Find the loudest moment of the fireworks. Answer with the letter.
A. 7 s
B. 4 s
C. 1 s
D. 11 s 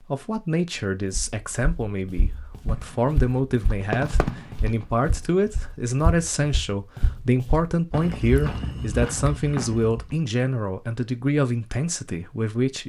B.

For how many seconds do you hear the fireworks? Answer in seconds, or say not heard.
3 s.